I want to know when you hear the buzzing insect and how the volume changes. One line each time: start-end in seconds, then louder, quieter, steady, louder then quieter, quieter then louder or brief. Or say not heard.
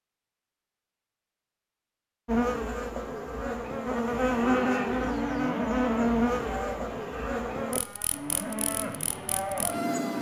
2.2-10.1 louder then quieter.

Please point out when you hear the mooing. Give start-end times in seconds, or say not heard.
3.9-9.8.